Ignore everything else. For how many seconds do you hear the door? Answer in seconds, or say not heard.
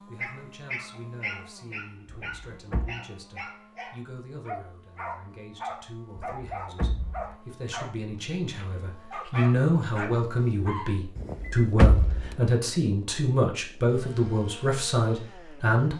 3 s.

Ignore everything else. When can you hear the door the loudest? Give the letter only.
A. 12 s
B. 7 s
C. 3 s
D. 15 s
A.